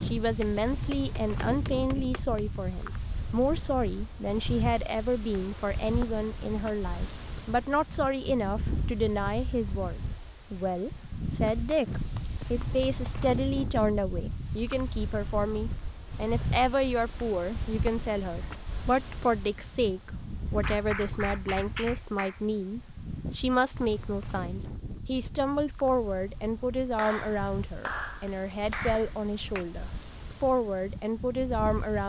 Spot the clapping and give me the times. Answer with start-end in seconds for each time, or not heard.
0.4-2.4, 11.4-13.3, 20.6-22.4, 26.9-29.6.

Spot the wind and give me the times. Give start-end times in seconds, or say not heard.
0.0-32.0.